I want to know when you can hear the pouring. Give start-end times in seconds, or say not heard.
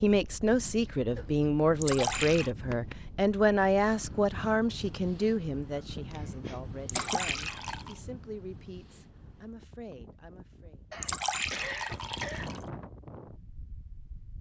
1.8-2.5, 6.8-8.0, 11.0-12.6.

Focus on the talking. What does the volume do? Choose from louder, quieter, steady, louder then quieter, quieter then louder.
quieter.